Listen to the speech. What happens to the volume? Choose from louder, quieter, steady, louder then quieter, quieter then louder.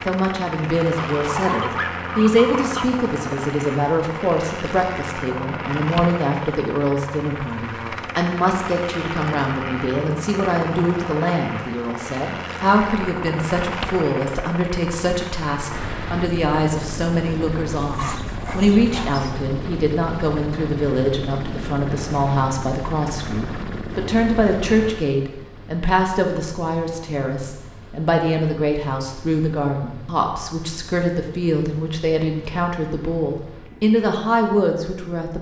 steady.